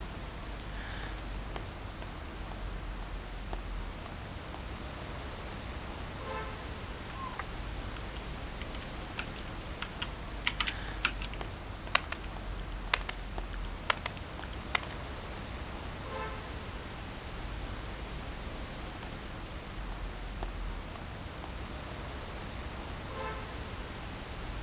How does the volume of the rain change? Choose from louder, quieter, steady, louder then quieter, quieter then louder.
steady.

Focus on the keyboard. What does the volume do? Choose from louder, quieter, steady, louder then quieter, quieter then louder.
louder then quieter.